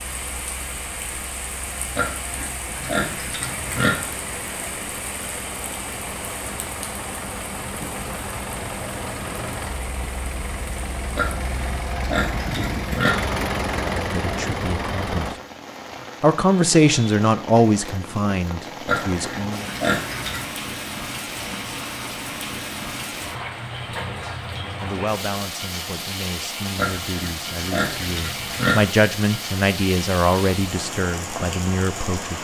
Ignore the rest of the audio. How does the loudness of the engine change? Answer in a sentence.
The volume of the engine goes up.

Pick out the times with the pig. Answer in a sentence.
The pig can be heard from 1.9 to 3.9 s, from 11.2 to 13.1 s, from 18.9 to 20.5 s and from 26.8 to 28.8 s.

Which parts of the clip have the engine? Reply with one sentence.
The engine can be heard from 0.0 to 15.4 s.